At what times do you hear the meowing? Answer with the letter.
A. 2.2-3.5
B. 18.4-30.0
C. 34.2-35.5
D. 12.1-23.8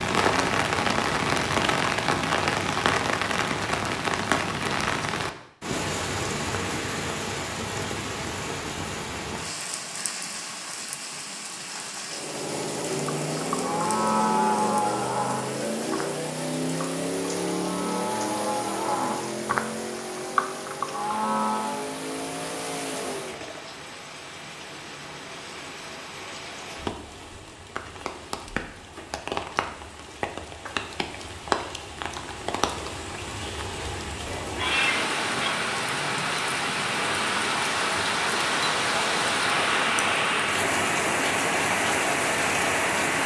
C.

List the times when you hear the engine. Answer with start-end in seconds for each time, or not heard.
12.1-23.8.